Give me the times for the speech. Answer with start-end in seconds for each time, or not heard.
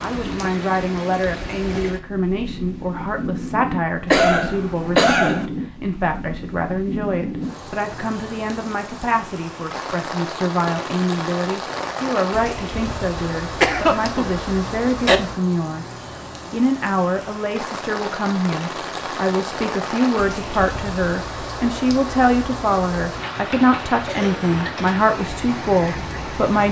0.0-26.6.